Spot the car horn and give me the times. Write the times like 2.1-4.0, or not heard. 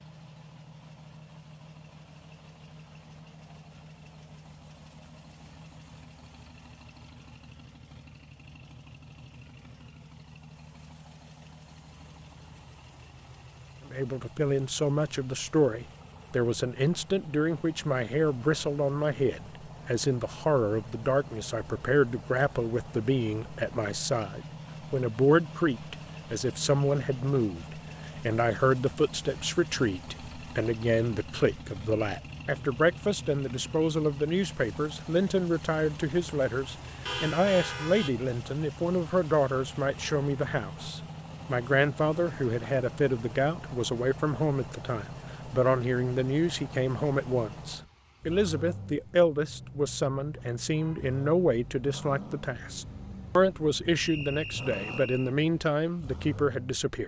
37.0-38.1.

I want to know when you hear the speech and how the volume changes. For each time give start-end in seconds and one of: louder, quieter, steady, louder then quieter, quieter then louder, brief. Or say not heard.
13.8-57.0 steady.